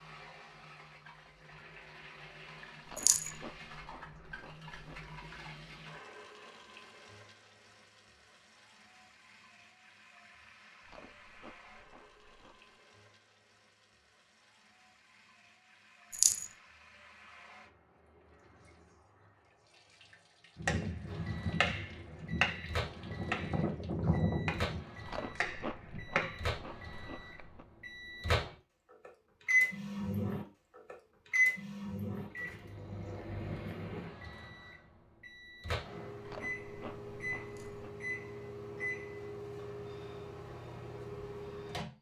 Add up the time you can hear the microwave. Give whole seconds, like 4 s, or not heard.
21 s.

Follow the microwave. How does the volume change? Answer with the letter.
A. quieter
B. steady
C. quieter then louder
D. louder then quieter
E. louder
D.